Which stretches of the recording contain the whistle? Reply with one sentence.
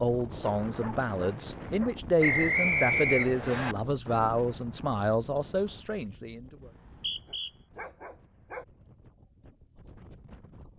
You can hear the whistle from 2.2 to 3.8 s and from 6.6 to 7.5 s.